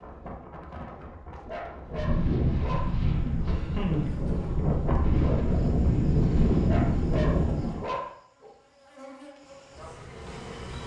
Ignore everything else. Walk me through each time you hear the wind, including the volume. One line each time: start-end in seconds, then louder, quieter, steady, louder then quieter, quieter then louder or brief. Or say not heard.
0.0-7.9 louder.